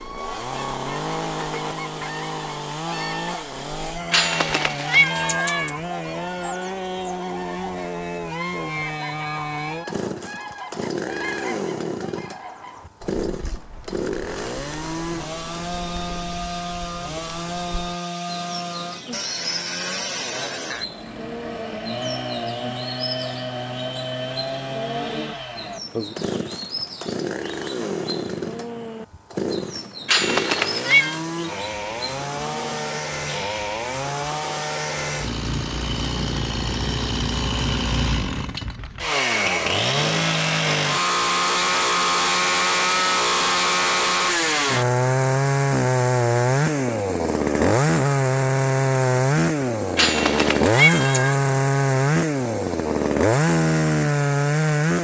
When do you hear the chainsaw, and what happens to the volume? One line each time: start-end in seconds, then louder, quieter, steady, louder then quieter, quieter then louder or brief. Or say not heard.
0.0-54.9 louder.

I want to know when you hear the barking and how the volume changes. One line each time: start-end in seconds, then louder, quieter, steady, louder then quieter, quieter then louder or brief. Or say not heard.
not heard.